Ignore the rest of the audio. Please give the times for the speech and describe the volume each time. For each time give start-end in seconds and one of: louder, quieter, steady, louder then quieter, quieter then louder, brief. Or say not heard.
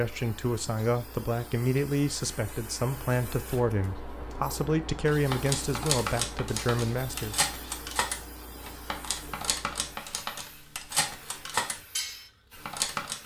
0.0-7.3 steady.